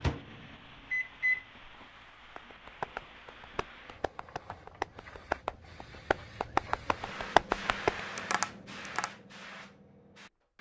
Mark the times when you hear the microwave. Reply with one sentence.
The microwave can be heard from 0.0 to 1.9 s.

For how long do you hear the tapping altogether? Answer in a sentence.
You can hear the tapping for 7 seconds altogether.